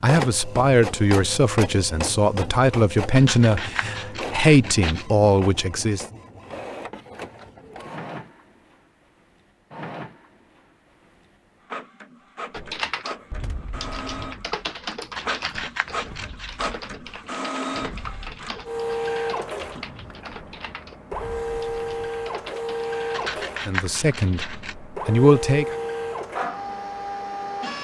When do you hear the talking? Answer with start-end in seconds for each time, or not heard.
0.0-6.0, 23.6-25.8.